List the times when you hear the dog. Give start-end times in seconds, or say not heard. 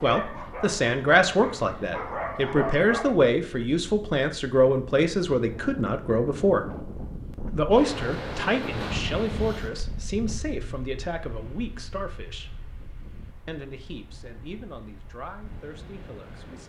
0.0-3.1.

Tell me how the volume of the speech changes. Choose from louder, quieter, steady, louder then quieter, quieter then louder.
quieter.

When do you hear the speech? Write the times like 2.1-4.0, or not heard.
0.0-6.7, 7.5-12.5, 13.4-16.6.